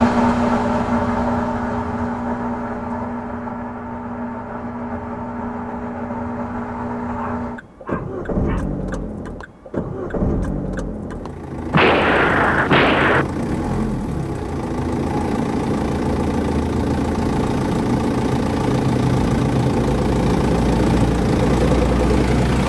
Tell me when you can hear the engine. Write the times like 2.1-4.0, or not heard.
0.0-22.6.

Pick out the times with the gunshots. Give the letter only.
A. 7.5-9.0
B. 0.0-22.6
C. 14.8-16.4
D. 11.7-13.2
D.